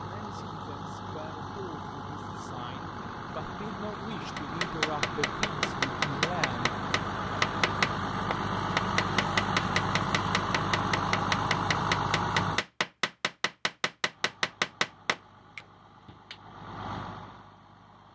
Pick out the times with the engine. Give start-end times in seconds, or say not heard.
0.0-12.7, 14.1-18.1.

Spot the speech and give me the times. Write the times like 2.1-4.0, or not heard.
0.0-6.7.